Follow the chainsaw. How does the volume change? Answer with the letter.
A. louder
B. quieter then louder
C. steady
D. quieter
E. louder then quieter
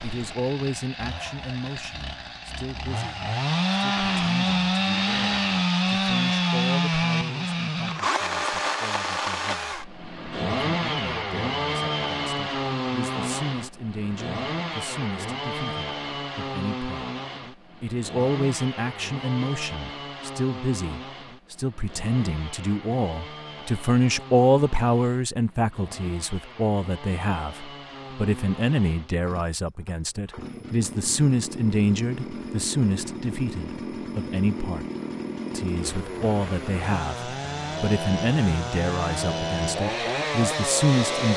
B.